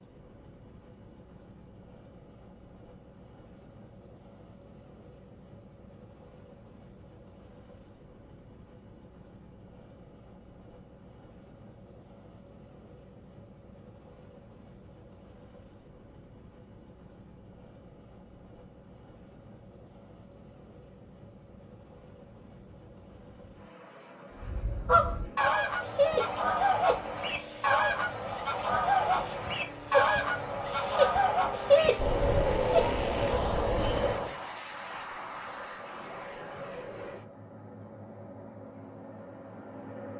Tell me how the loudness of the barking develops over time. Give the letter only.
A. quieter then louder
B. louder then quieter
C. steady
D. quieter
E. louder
A.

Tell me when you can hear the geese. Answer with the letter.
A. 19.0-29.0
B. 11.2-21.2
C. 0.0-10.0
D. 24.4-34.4
D.